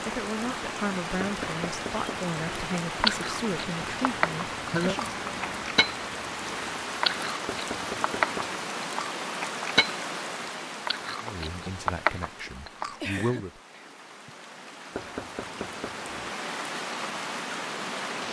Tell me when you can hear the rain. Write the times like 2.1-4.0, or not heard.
0.0-18.2.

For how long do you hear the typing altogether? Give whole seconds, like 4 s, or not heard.
not heard.